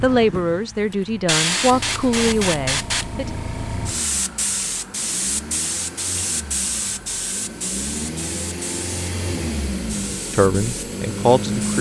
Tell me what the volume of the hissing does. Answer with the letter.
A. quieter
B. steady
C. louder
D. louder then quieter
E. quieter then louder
A.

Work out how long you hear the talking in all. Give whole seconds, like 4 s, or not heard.
5 s.